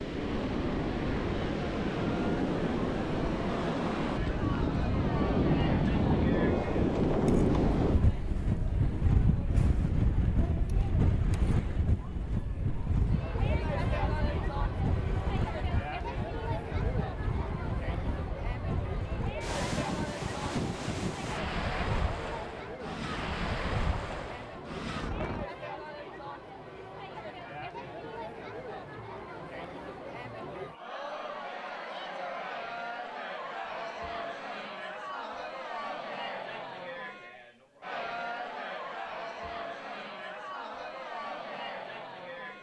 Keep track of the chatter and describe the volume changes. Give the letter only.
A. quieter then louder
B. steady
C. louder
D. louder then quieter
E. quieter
B.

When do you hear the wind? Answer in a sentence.
You can hear the wind from 0.0 to 25.5 s.